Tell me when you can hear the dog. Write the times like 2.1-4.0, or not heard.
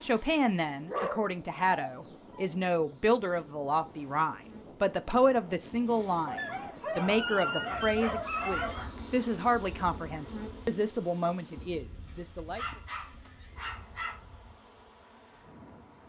0.8-2.5, 6.2-8.9, 12.1-14.2.